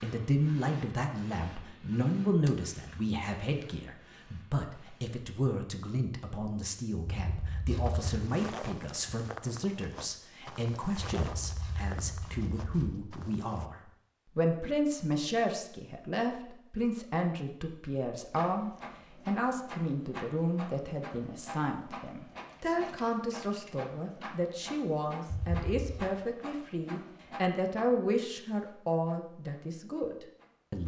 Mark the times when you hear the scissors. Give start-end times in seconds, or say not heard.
7.0-8.1, 11.2-13.0, 25.3-26.0.